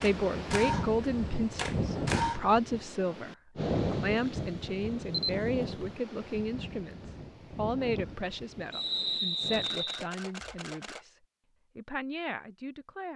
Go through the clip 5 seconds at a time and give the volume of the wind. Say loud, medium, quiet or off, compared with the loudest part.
loud, medium, off.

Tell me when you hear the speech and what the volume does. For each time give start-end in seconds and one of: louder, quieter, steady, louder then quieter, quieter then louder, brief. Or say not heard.
0.0-11.2 quieter
11.8-13.1 brief.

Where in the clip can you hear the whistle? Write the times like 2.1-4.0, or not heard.
8.7-10.1.